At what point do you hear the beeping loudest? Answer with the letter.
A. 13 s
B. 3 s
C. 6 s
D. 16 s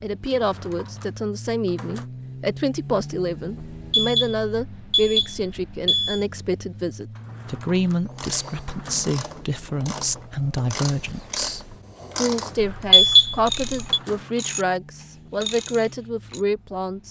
A.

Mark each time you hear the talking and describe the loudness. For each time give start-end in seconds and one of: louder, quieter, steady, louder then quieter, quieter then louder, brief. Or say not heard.
0.0-17.0 steady.